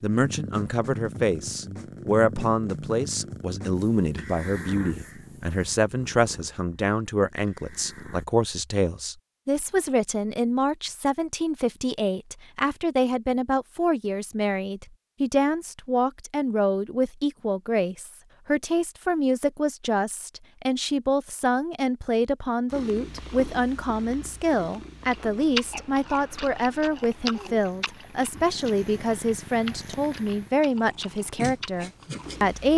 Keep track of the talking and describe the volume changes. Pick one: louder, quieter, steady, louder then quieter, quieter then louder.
steady.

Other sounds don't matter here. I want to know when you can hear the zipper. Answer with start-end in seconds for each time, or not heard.
not heard.